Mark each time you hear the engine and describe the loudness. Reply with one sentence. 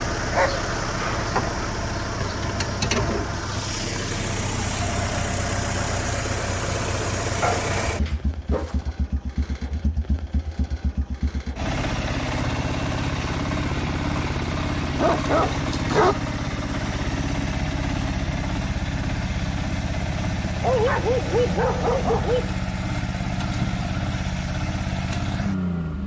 The engine can be heard from 0.0 to 26.0 s, at a steady volume.